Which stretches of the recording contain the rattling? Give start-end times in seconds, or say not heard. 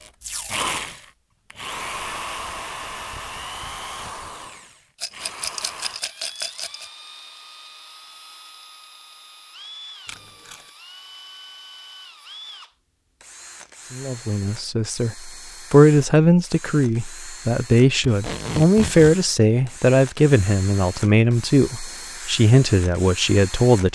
5.0-6.9.